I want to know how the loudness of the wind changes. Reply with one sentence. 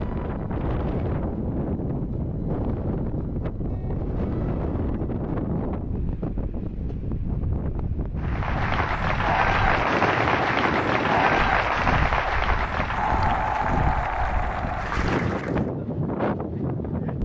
The volume of the wind stays about the same.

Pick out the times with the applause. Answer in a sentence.
You can hear the applause from 8.2 to 15.7 s.